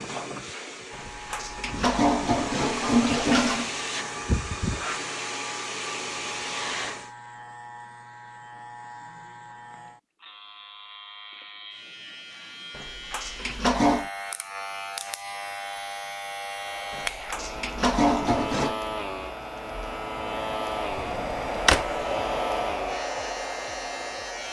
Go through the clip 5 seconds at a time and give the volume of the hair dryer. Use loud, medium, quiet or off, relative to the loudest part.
loud, loud, off, medium, loud.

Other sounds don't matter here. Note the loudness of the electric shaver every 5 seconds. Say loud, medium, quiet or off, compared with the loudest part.
medium, medium, medium, loud, loud.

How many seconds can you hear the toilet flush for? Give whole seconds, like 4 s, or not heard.
6 s.